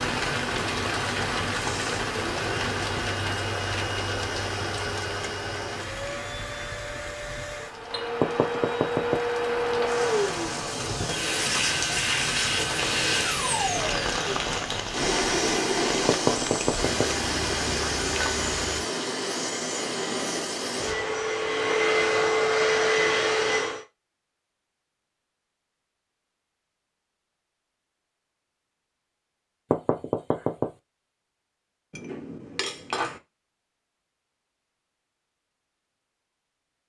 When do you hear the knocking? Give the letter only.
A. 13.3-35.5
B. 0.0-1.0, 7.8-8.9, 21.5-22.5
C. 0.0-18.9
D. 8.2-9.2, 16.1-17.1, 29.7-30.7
D.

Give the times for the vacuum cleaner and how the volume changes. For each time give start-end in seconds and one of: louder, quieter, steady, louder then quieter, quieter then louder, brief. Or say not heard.
1.7-23.9 louder.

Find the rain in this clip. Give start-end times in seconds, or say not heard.
0.0-18.9.